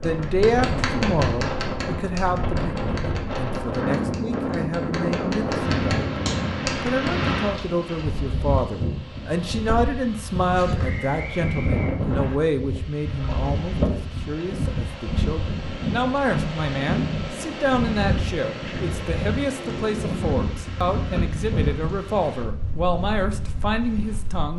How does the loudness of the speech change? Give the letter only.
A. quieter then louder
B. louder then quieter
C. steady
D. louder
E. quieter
C.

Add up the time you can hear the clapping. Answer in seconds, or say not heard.
7 s.